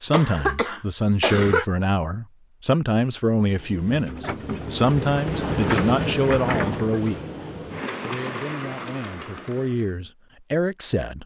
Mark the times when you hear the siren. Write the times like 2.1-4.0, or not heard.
not heard.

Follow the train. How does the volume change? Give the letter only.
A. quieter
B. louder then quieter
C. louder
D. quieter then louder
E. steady
B.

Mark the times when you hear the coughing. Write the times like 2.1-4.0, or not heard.
0.1-1.6, 6.8-7.3.